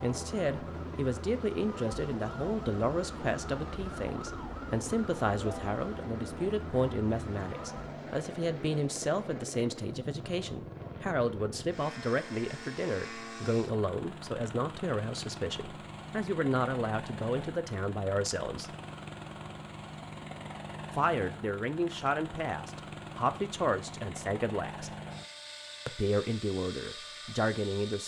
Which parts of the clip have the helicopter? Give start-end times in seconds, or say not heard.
0.0-28.0.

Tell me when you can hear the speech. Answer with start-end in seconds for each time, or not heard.
0.0-18.8, 20.9-24.9, 25.9-28.0.